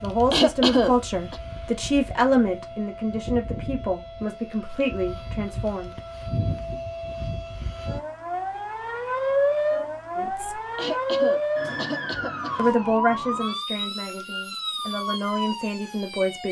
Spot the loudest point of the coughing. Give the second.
1 s.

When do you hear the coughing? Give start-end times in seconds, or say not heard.
0.3-1.4, 10.8-12.6.